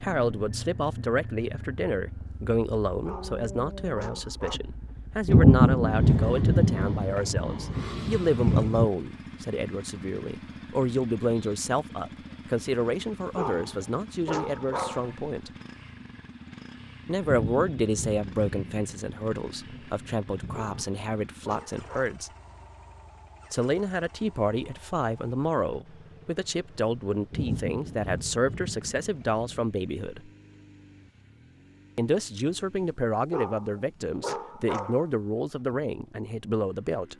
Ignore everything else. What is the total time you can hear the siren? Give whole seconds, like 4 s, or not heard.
not heard.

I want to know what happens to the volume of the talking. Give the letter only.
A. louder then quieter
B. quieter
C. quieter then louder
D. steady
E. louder
D.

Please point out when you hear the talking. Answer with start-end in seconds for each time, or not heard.
0.0-15.5, 17.1-22.3, 23.5-30.3, 31.9-37.1.